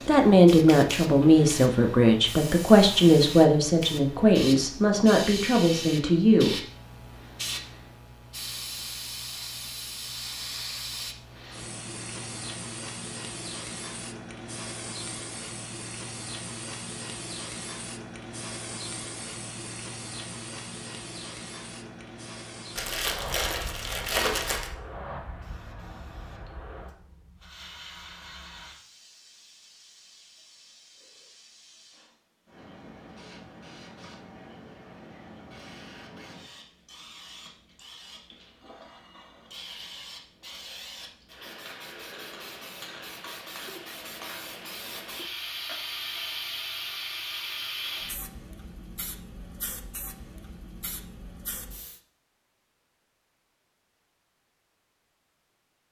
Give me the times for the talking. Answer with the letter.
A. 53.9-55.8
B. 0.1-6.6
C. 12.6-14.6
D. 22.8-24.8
B.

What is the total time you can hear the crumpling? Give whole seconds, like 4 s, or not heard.
2 s.